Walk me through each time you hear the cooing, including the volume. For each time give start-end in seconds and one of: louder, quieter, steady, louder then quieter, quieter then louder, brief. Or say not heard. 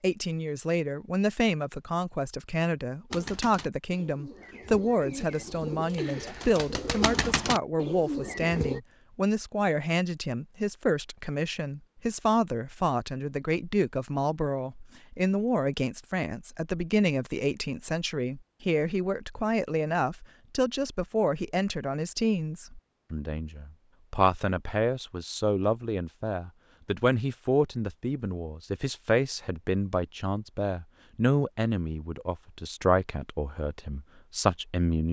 3.1-8.8 louder.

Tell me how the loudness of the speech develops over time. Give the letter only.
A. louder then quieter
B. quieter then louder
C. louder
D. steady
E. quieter
D.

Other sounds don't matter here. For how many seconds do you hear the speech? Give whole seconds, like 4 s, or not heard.
35 s.